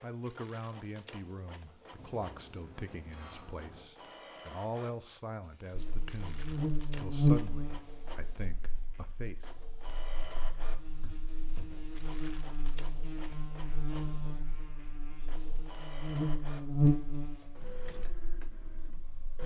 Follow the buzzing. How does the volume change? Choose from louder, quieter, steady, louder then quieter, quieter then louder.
quieter then louder.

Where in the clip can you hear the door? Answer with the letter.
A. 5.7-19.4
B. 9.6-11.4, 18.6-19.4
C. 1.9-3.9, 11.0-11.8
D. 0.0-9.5
C.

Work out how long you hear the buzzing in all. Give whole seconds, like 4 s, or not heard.
14 s.